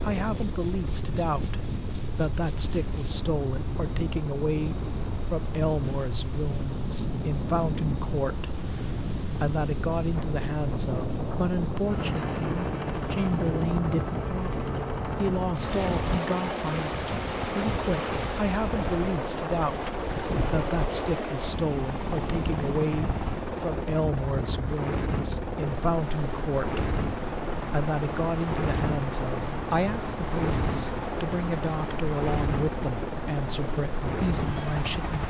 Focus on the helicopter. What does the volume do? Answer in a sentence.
The volume of the helicopter goes up.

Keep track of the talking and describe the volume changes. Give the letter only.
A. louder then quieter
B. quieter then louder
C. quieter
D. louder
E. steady
E.